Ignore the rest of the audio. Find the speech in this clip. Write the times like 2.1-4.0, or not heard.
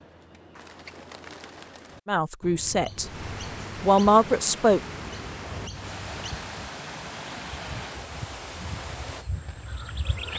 2.0-3.0, 3.8-4.8.